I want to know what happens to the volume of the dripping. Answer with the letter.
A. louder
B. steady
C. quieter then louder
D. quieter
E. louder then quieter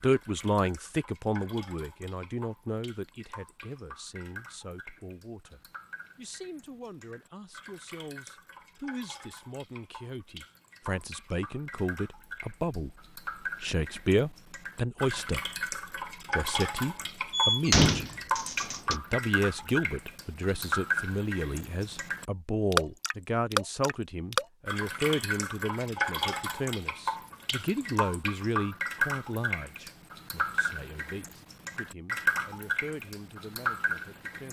A.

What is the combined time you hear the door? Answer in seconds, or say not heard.
2 s.